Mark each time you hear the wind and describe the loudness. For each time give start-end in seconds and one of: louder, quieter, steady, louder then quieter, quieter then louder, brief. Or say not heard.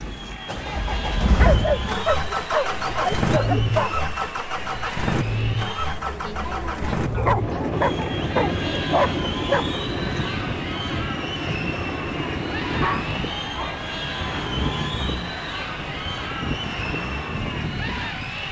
7.1-18.4 steady.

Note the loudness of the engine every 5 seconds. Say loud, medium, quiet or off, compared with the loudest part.
loud, loud, medium, medium.